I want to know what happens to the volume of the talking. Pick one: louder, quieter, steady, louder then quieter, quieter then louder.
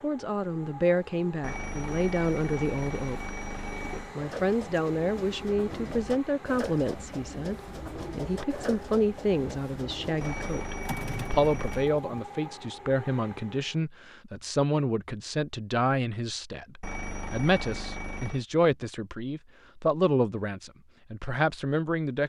steady.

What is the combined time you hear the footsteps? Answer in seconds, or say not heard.
not heard.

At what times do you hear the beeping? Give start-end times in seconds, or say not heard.
1.4-4.1, 10.2-11.9, 16.8-18.4.